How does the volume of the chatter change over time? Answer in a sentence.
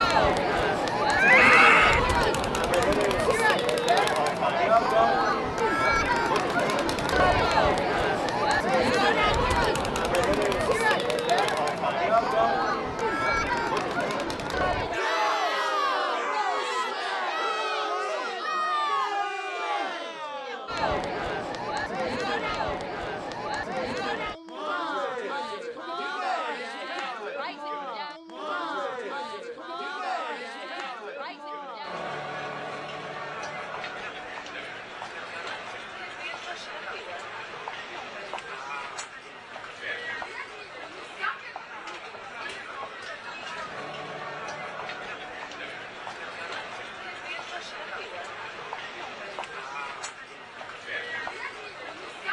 The volume of the chatter goes down.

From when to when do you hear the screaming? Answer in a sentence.
You can hear the screaming from 1.1 to 2.0 s.